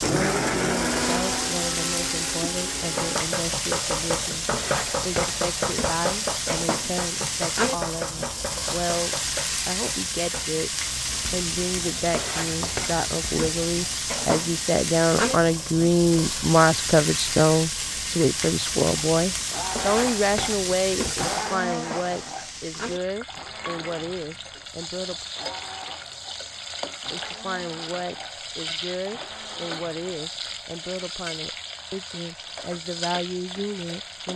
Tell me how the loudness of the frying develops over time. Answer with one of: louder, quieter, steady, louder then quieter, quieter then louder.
quieter.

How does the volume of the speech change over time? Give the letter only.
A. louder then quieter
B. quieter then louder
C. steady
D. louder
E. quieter
A.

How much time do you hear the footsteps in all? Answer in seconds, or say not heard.
not heard.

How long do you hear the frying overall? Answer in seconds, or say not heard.
34 s.